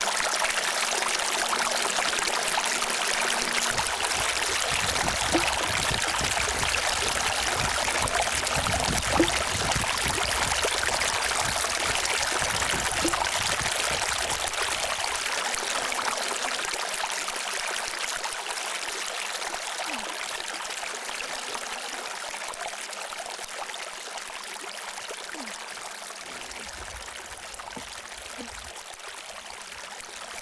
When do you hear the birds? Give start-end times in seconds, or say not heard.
not heard.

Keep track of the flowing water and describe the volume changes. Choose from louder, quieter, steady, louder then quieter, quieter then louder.
quieter.